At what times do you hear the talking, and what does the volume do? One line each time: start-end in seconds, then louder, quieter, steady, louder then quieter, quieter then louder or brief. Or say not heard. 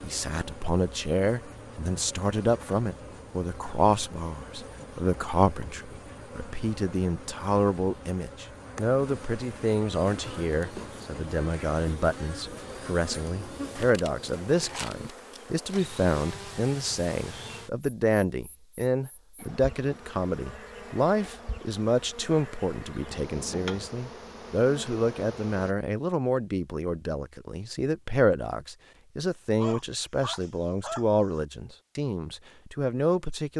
0.0-33.5 steady.